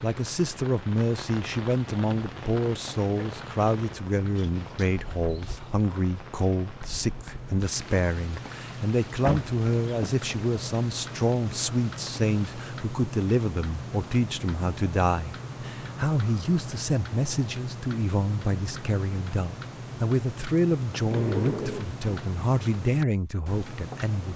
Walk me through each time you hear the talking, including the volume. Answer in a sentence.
You can hear the talking from 0.0 to 24.3 s, at a steady volume.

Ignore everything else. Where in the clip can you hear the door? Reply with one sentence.
The door can be heard from 4.3 to 5.8 s, from 9.2 to 10.1 s and from 20.9 to 21.9 s.